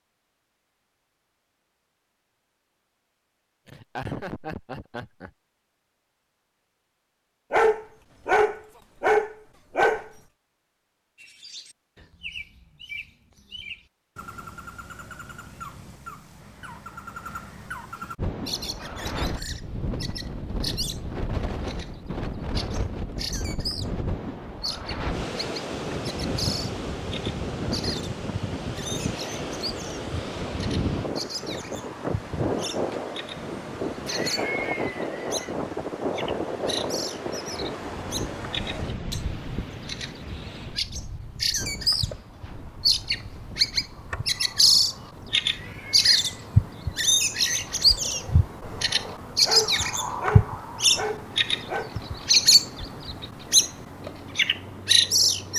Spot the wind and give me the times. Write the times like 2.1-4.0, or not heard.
18.1-55.5.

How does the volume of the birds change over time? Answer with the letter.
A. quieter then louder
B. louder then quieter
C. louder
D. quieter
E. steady
C.